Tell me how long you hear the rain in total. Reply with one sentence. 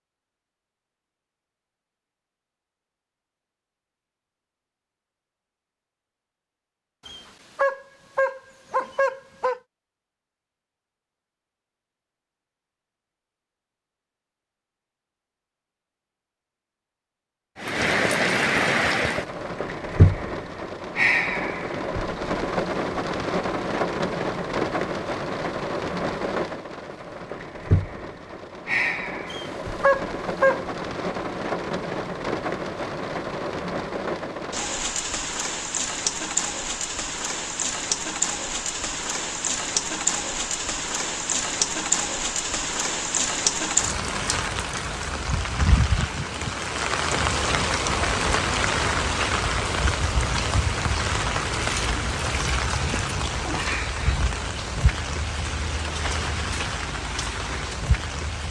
The rain can be heard for 41 seconds in total.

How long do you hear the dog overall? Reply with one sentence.
The dog can be heard for 4 seconds in total.